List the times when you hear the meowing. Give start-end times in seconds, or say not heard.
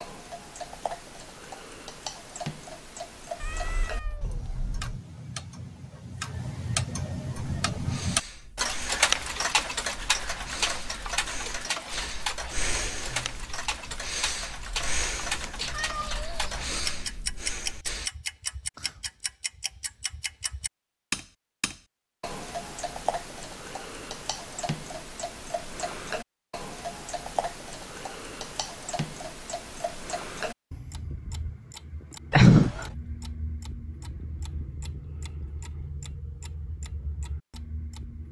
3.4-4.9, 15.6-17.1, 32.3-32.9.